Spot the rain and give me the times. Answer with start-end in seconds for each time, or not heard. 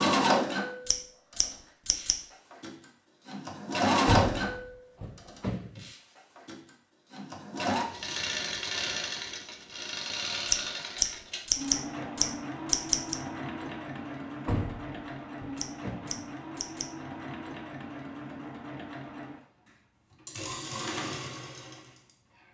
not heard.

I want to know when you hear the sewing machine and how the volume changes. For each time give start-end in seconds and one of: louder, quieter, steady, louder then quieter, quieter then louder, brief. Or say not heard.
0.0-22.4 quieter.